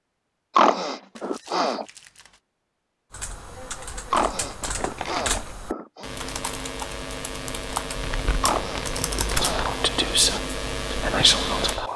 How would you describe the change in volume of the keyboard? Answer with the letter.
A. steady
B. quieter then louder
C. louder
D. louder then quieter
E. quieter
C.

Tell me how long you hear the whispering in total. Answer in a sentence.
The whispering can be heard for 3 seconds in total.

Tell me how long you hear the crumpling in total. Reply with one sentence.
You can hear the crumpling for 4 seconds altogether.